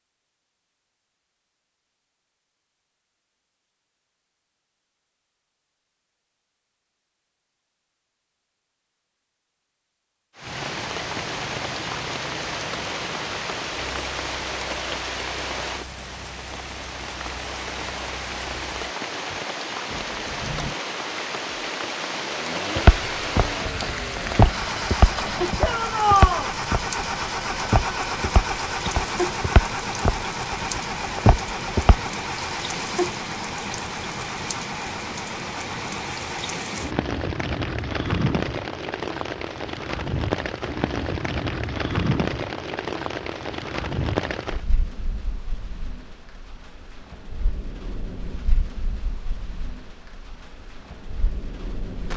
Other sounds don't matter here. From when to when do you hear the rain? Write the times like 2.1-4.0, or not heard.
10.3-52.1.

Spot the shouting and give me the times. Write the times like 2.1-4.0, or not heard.
25.6-26.5.